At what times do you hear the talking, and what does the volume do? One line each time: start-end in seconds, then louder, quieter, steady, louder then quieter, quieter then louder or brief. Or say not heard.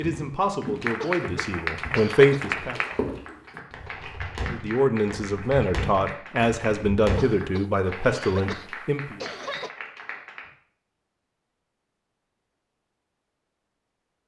0.0-2.8 brief
4.5-9.2 steady.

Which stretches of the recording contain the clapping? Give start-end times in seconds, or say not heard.
0.6-10.5.